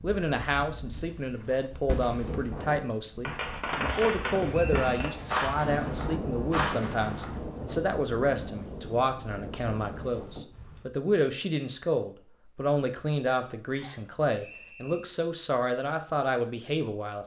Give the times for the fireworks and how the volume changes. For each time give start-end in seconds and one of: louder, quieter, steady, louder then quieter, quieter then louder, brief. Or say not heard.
1.3-7.8 louder.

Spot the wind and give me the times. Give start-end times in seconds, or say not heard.
0.0-10.8.